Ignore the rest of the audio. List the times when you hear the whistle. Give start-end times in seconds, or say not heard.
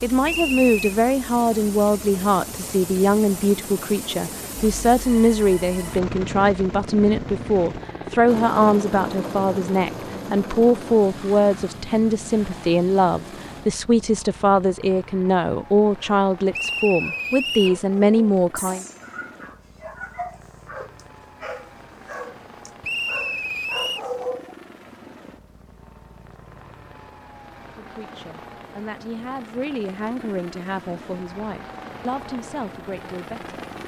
0.2-0.8, 16.5-17.8, 22.8-24.0.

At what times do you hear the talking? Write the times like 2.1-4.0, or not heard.
0.0-18.9, 27.8-33.5.